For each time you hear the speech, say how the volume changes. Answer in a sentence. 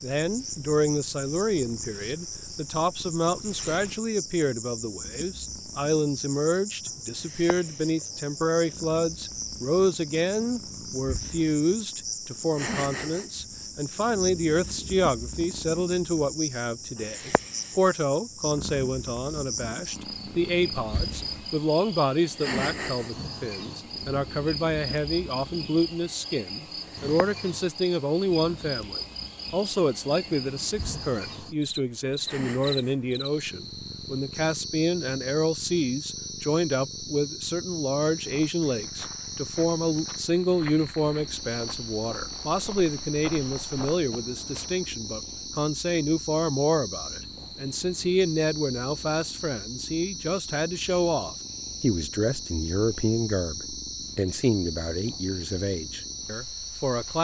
The speech can be heard from 0.0 to 57.1 s, at a steady volume.